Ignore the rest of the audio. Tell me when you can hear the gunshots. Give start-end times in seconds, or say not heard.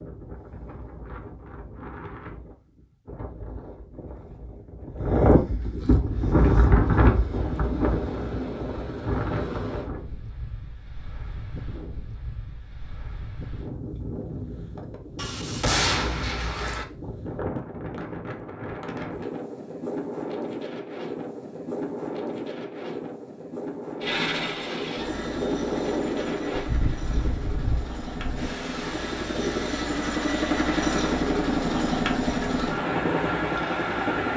15.2-16.9.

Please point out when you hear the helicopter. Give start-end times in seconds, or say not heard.
6.0-9.9, 24.0-34.3.